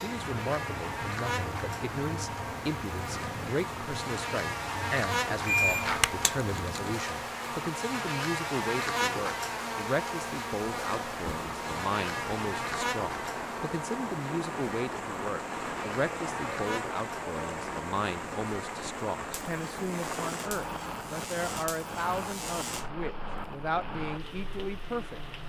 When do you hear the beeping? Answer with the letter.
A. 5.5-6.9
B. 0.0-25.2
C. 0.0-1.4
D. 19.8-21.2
A.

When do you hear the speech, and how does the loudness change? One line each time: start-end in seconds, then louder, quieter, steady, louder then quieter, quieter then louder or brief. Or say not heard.
0.0-25.2 steady.